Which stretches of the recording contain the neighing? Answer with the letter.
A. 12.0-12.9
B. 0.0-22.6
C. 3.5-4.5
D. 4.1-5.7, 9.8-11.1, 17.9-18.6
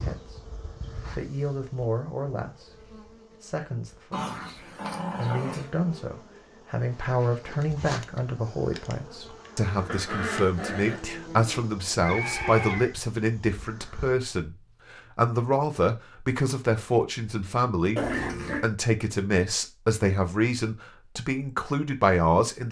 A.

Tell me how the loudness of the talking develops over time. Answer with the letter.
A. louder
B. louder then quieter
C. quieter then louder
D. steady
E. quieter
A.